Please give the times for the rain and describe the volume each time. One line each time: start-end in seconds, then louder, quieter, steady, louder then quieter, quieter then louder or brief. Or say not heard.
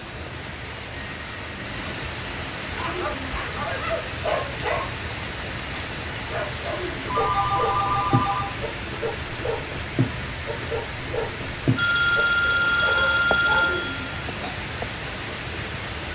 0.0-16.1 steady.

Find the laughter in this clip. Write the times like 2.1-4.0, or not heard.
2.8-3.3, 6.7-7.2, 13.6-14.1.